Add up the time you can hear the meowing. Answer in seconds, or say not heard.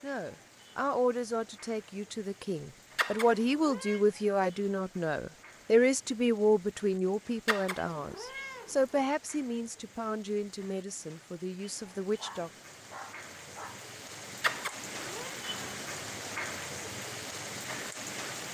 4 s.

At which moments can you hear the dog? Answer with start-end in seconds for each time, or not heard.
11.9-13.8.